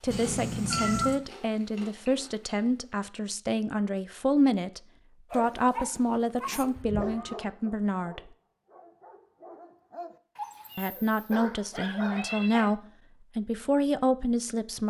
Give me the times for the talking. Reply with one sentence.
You can hear the talking from 0.0 to 8.2 s and from 10.8 to 14.8 s.